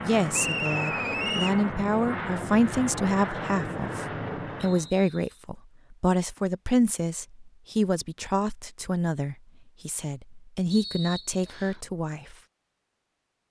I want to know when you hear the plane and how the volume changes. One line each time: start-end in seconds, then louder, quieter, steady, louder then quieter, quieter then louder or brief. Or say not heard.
0.0-4.9 steady.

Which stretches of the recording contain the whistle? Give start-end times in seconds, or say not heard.
0.3-1.6, 4.6-5.5, 10.7-11.8.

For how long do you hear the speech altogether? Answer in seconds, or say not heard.
12 s.